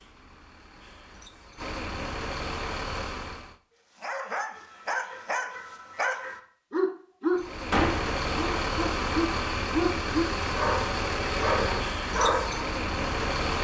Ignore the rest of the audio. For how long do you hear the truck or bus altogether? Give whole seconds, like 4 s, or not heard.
10 s.